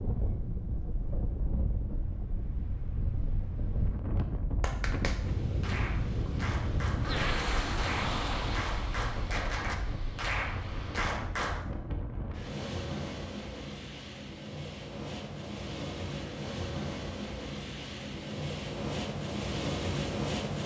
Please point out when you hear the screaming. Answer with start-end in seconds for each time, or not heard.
not heard.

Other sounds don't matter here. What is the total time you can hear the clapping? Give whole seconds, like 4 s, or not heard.
7 s.